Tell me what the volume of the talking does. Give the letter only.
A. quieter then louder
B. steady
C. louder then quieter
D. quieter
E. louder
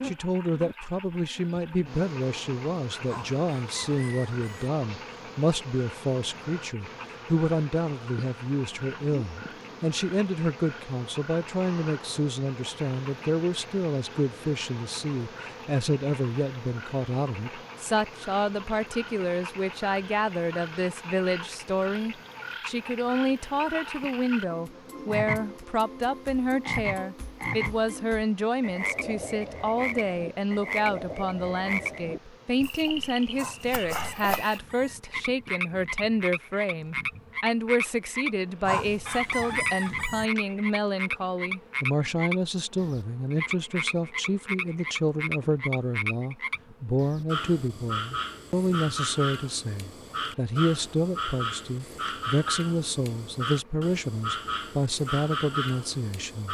B.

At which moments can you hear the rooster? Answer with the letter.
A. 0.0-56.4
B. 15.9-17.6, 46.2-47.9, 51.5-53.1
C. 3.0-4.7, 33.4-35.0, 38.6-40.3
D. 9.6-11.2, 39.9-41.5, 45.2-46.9
C.